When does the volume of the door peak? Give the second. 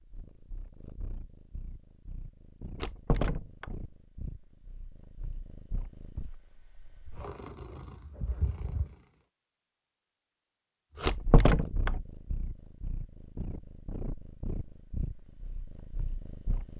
11 s.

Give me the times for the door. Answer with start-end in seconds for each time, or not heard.
2.8-3.6, 11.0-11.9.